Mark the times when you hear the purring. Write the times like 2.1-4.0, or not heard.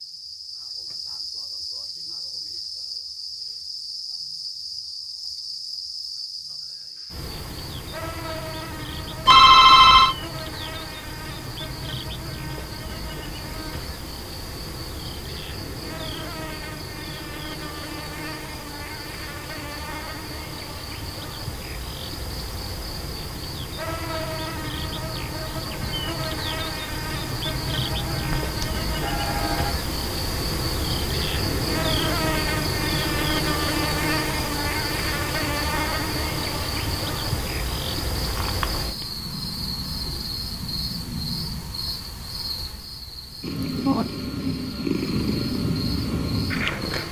43.4-47.0.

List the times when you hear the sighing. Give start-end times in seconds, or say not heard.
not heard.